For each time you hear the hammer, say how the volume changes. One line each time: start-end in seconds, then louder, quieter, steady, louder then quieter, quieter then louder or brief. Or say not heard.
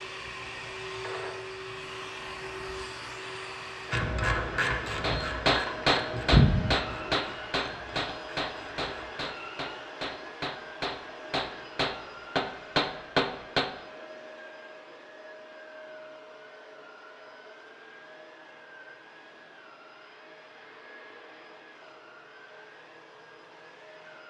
5.0-13.7 quieter then louder.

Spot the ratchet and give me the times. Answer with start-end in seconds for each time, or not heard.
3.9-9.1.